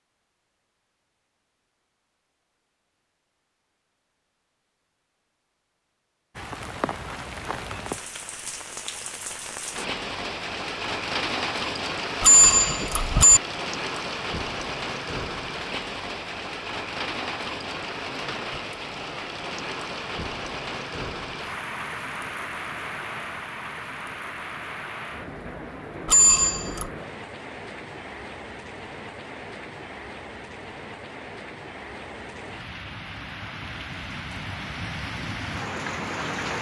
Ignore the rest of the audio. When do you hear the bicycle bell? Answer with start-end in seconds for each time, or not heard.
12.2-13.4, 26.1-26.9.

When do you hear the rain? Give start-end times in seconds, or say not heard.
6.3-36.5.